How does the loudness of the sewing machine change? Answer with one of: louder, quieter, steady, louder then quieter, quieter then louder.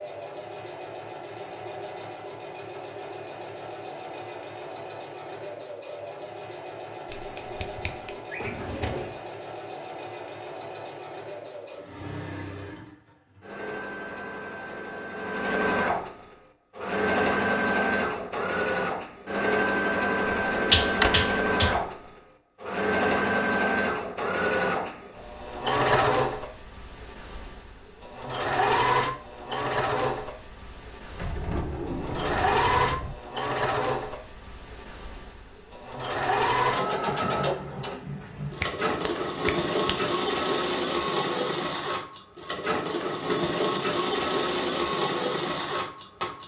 louder.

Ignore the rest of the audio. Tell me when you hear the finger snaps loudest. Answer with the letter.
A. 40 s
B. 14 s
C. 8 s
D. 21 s
D.